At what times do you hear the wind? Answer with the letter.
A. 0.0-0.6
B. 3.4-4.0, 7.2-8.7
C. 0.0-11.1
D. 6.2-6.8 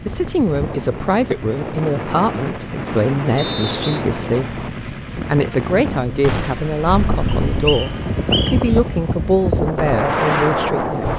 C.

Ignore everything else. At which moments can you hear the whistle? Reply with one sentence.
The whistle can be heard from 3.4 to 4.0 s and from 7.2 to 8.7 s.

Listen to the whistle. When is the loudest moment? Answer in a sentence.
The loudest moment of the whistle is at 8 seconds.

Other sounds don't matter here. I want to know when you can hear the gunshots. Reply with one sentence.
You can hear the gunshots from 6.2 to 6.8 s.